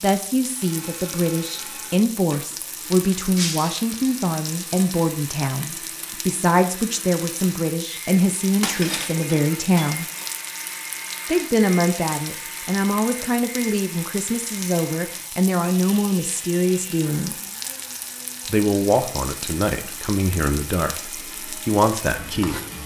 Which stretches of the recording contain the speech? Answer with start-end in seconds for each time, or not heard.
0.0-10.1, 11.2-17.4, 18.4-22.6.